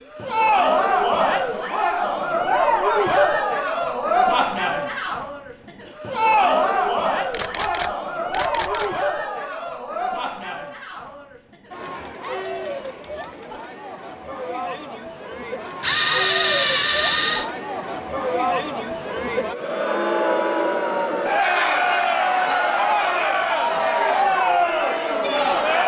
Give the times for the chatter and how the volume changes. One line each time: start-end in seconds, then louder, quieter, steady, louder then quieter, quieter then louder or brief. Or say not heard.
0.1-25.8 quieter then louder.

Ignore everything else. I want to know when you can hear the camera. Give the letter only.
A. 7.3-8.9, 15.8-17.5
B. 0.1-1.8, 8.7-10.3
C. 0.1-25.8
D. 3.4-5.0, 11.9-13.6
A.